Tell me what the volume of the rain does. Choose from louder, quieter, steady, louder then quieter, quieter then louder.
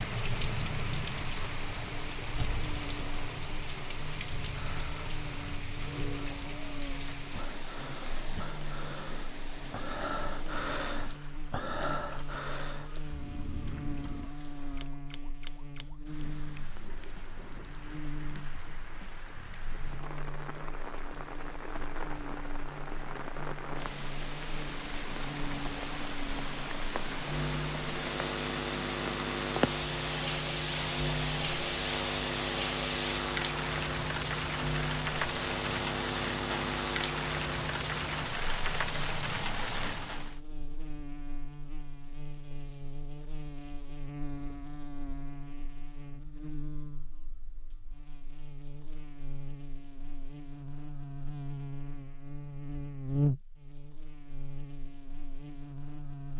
quieter then louder.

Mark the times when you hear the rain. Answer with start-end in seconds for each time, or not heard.
0.0-40.4.